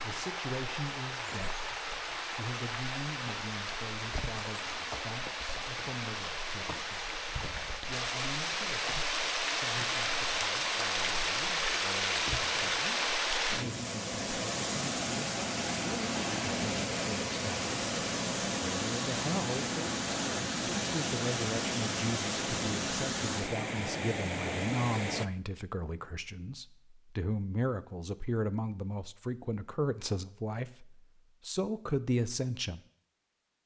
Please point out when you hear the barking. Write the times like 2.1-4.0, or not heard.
not heard.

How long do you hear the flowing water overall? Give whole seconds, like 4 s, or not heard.
25 s.